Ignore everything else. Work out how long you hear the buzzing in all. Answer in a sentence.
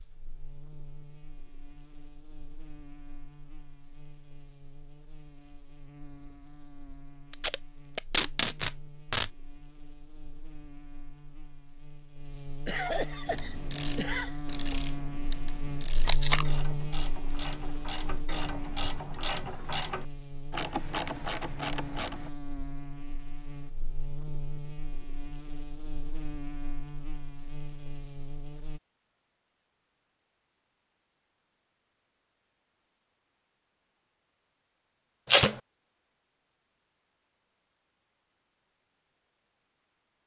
The buzzing can be heard for 29 seconds in total.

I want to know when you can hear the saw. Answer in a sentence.
The saw can't be heard in this clip.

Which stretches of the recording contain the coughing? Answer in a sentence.
The coughing can be heard from 12.7 to 14.3 s.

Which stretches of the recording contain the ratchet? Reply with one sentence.
The ratchet can be heard from 13.2 to 22.3 s.